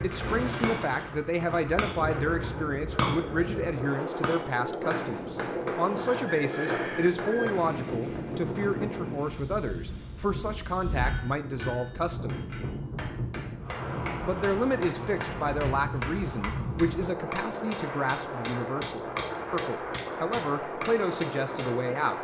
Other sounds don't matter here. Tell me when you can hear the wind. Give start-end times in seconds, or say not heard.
0.0-22.1.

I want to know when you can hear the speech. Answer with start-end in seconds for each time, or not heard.
0.0-12.3, 14.2-22.1.